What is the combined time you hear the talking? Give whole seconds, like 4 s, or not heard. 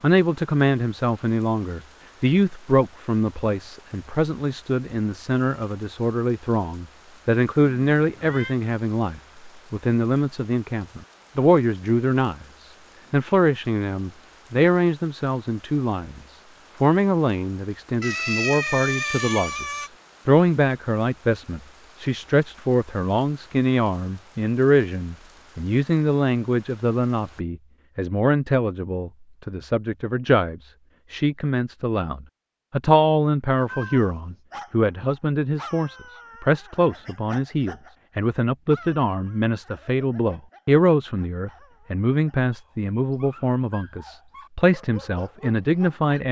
46 s.